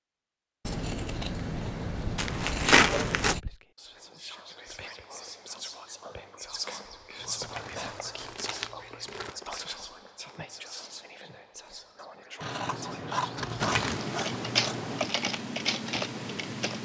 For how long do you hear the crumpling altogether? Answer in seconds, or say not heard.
4 s.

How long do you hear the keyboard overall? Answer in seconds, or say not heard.
3 s.